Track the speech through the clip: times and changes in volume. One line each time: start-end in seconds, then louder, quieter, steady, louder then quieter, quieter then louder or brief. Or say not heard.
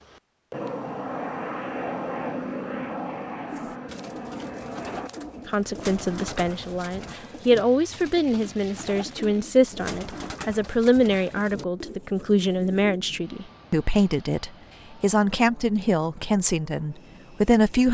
5.5-17.8 steady.